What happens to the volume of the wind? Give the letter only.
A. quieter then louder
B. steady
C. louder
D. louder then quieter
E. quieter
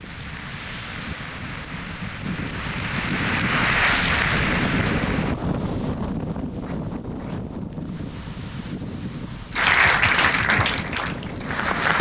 D.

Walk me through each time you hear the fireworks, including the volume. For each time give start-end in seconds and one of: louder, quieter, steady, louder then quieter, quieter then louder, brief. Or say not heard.
not heard.